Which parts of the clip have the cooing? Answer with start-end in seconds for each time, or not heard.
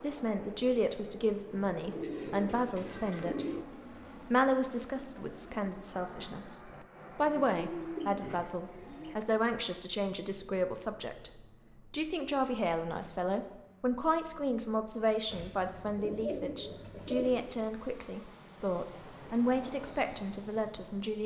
1.9-3.6, 7.4-9.2, 15.2-17.6.